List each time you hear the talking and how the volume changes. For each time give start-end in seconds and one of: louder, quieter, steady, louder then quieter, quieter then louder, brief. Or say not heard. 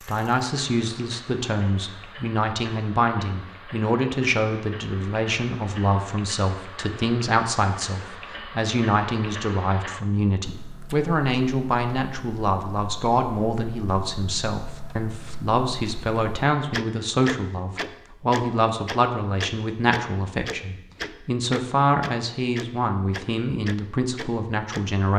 0.1-25.1 steady.